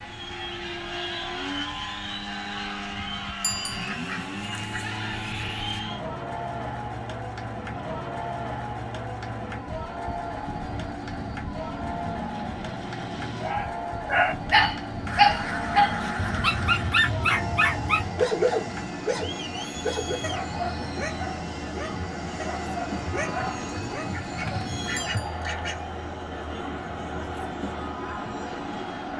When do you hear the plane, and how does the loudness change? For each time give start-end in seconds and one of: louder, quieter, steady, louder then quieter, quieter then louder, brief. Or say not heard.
0.0-29.1 steady.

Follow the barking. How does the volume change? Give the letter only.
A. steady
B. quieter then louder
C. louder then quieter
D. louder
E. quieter
E.